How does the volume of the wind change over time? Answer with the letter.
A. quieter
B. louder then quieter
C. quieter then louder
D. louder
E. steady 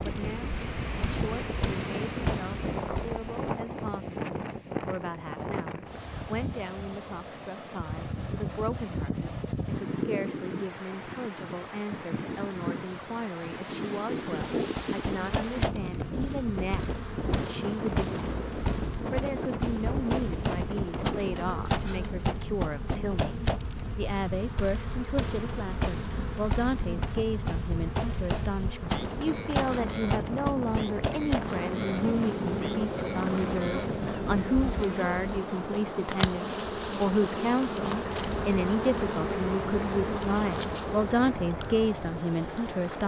E.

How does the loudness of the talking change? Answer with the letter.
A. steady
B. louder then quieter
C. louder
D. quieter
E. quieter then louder
C.